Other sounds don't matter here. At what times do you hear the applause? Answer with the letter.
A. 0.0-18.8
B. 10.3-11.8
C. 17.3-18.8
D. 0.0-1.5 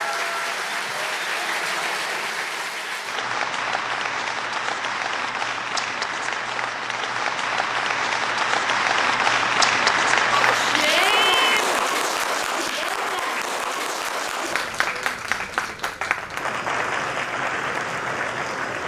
A.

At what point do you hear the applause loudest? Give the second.
10 s.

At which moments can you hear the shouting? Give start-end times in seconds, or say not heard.
10.3-11.8.